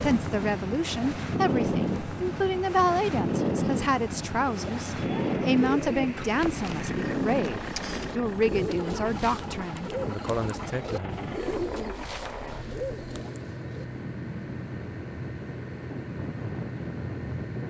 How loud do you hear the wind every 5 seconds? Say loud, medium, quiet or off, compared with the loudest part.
loud, loud, medium, medium.